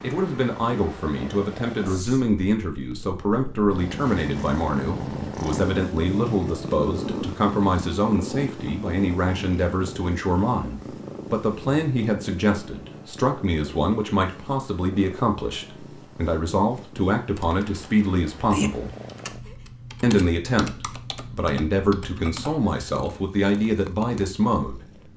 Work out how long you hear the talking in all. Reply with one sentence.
The talking can be heard for 24 seconds in total.